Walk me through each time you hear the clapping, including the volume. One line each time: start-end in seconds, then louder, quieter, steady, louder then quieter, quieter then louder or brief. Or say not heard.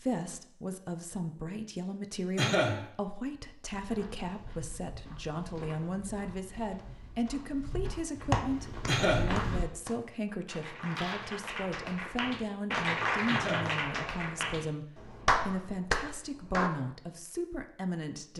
8.3-16.7 louder.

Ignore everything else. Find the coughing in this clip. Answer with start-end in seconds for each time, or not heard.
2.4-2.9, 8.8-9.3, 13.2-13.8.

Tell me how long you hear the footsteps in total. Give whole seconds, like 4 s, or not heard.
6 s.